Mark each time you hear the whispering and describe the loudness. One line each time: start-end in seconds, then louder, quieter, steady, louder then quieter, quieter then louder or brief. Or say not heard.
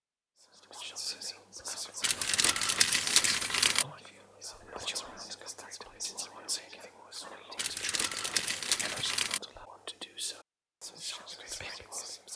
0.4-12.3 steady.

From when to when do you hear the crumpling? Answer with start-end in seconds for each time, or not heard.
2.0-3.9, 7.5-9.4.